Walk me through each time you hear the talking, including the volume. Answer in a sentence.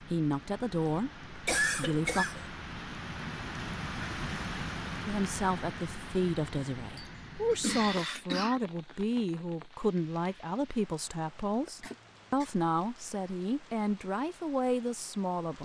You can hear the talking briefly from 0.0 to 2.2 s; and from 5.0 to 15.5 s, at a steady volume.